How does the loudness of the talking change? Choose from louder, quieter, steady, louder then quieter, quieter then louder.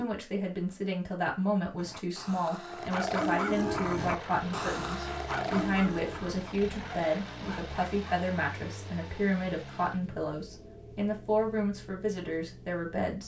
steady.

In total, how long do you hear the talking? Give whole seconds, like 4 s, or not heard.
13 s.